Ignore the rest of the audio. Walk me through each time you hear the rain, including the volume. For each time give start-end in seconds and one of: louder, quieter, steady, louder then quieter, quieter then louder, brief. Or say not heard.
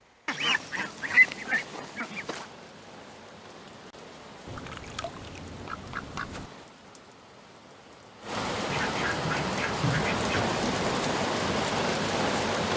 0.0-12.7 louder.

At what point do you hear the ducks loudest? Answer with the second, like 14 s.
1 s.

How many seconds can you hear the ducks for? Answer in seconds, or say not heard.
6 s.